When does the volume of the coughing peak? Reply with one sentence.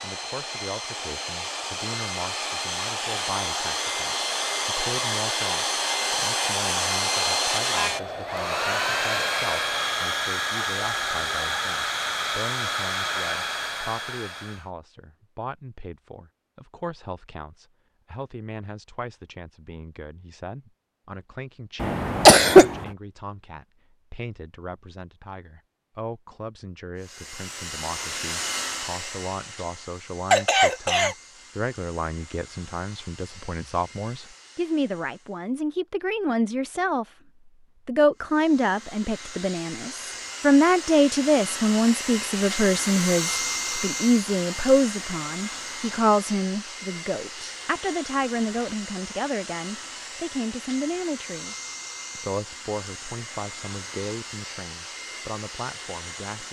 The volume of the coughing peaks at 22 seconds.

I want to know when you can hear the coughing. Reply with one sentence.
You can hear the coughing from 21.8 to 22.8 s and from 30.3 to 31.1 s.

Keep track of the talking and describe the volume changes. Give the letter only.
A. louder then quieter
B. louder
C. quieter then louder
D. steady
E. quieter
A.